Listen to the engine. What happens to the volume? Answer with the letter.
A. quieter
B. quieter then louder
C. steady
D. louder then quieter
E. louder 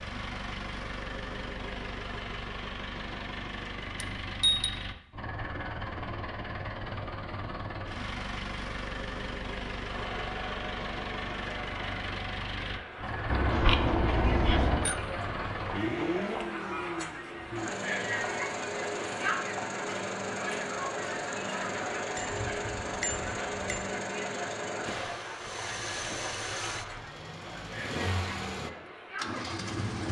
C.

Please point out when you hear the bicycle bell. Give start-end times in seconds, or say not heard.
4.0-4.8, 13.3-14.9, 22.1-23.9.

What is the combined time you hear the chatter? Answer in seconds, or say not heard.
20 s.